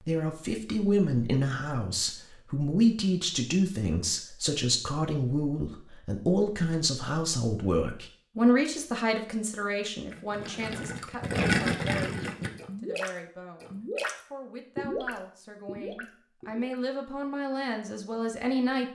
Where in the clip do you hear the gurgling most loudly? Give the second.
12 s.